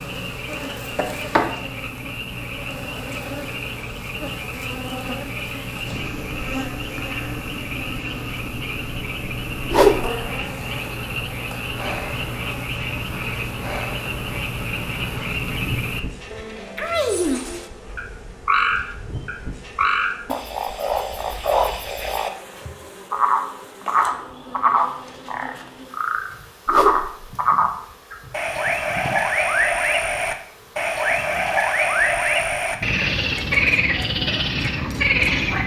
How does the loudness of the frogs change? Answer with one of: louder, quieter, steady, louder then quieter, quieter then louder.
louder.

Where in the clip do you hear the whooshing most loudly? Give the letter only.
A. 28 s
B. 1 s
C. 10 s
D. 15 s
C.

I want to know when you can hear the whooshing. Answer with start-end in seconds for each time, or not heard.
9.7-10.2, 26.6-27.3.